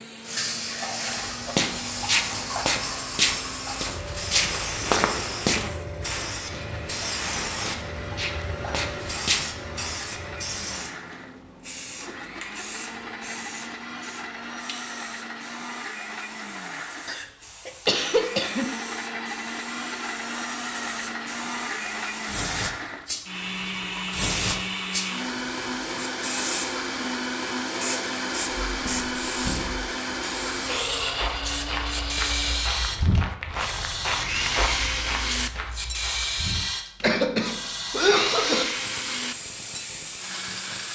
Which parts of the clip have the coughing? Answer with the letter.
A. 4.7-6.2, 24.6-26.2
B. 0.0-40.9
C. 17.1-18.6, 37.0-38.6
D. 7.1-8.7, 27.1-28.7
C.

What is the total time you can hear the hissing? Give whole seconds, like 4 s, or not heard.
41 s.